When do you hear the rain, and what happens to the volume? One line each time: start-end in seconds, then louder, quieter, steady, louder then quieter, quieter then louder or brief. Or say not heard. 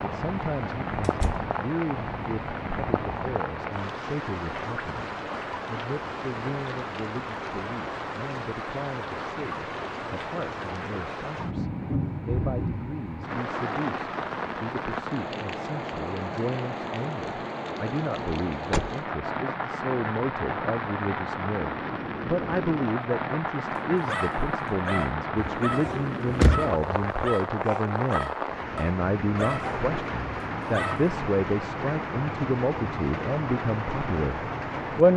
0.0-35.1 steady.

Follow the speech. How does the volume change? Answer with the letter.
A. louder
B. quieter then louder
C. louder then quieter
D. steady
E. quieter
A.